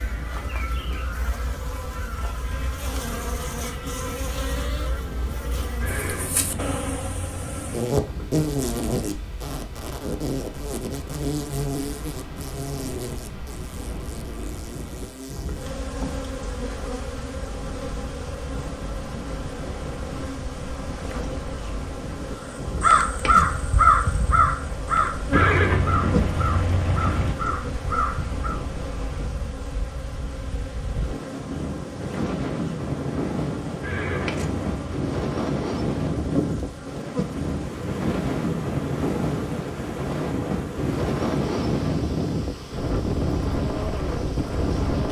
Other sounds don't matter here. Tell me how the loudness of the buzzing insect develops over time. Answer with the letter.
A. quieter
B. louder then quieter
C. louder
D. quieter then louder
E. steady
A.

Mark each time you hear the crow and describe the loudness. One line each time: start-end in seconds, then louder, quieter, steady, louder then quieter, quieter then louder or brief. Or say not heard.
22.4-28.6 quieter.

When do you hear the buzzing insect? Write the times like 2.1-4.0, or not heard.
0.0-45.0.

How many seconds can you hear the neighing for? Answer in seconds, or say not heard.
5 s.